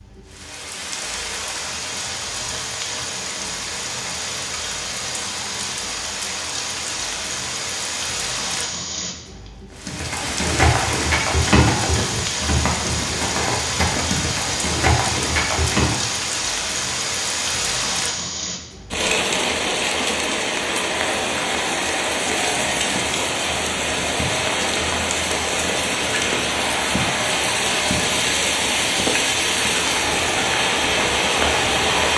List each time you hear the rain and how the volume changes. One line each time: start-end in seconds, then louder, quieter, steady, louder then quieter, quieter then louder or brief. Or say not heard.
0.0-32.1 louder.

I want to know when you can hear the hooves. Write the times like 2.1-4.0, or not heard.
9.8-16.0.